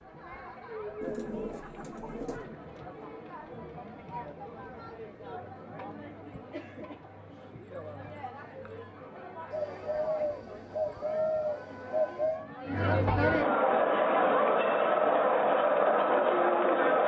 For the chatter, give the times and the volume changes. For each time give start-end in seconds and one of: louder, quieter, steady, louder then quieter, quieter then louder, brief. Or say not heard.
0.0-17.0 louder.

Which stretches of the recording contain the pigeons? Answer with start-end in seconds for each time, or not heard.
1.0-2.5, 9.5-12.4.